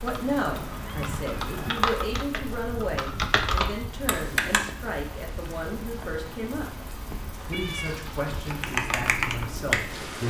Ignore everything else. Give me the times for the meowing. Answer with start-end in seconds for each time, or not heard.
0.5-1.9, 7.5-8.1.